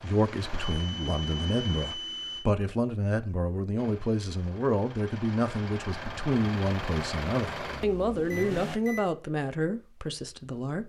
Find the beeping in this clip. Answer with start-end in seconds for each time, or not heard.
0.1-2.5, 8.2-9.1.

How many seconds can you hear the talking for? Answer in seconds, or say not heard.
11 s.